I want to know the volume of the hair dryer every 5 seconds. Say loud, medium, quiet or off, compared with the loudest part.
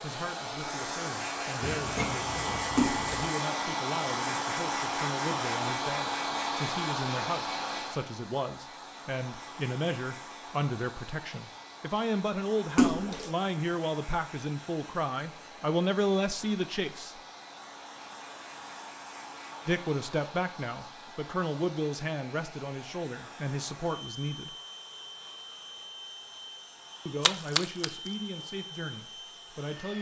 loud, loud, quiet, quiet, quiet, quiet.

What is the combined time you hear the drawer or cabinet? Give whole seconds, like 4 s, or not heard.
2 s.